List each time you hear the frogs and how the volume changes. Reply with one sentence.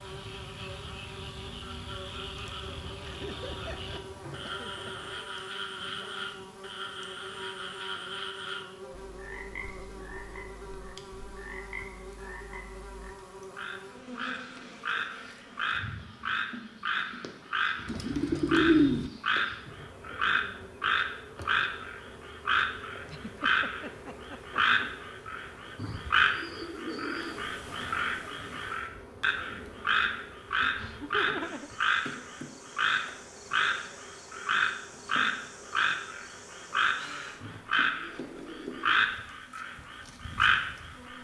The frogs can be heard from 0.0 to 41.1 s, getting louder.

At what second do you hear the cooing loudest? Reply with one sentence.
The loudest moment of the cooing is at 19 seconds.